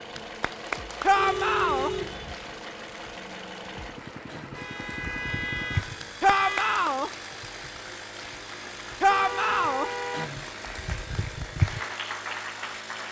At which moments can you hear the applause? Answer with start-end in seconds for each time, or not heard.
0.0-13.0.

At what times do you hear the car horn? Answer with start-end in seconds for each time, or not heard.
1.1-2.4, 4.5-6.8, 9.1-10.4.